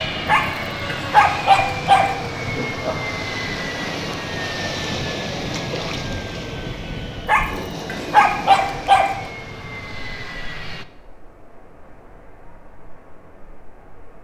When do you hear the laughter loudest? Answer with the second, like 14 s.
3 s.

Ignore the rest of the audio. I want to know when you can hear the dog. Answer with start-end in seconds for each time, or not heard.
0.2-2.1, 7.2-9.2.